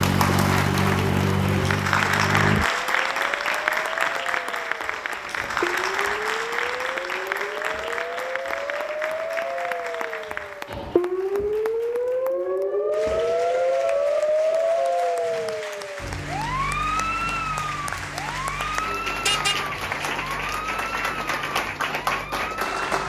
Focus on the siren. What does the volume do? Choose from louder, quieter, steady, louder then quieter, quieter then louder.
louder then quieter.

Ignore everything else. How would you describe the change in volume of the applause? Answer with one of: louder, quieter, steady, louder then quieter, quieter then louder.
quieter then louder.